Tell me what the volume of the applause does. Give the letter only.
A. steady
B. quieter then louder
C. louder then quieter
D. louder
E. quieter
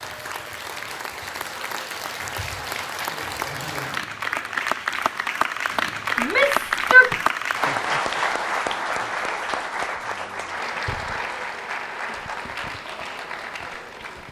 C.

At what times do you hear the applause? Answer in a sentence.
You can hear the applause from 0.0 to 14.2 s.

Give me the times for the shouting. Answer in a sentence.
You can hear the shouting from 6.2 to 7.2 s.